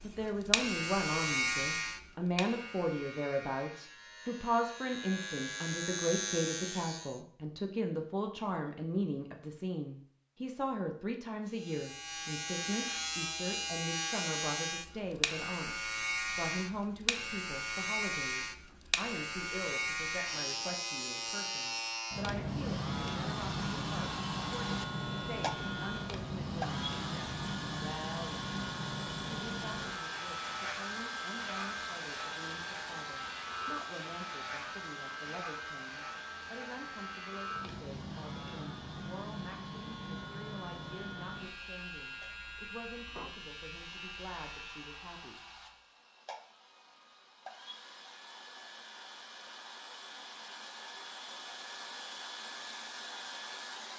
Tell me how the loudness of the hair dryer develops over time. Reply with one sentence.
The volume of the hair dryer goes down, then up.